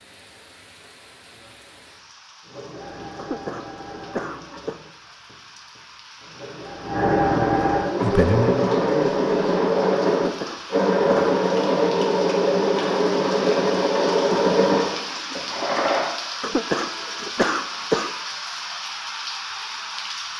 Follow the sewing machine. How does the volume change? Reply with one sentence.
The volume of the sewing machine goes up.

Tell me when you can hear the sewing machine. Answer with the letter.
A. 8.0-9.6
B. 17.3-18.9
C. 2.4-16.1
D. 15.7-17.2
C.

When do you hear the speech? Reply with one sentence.
The speech can be heard from 8.0 to 9.6 s.